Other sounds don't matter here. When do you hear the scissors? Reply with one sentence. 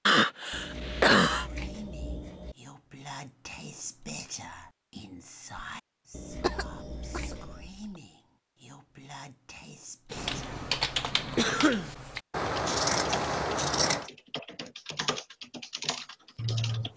The scissors can be heard from 0.5 to 2.5 s, from 6.1 to 7.7 s and from 12.3 to 14.1 s.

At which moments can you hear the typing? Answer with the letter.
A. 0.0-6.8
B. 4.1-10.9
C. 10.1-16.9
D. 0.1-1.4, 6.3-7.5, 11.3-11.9
C.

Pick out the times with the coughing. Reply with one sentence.
The coughing can be heard from 0.1 to 1.4 s, from 6.3 to 7.5 s and from 11.3 to 11.9 s.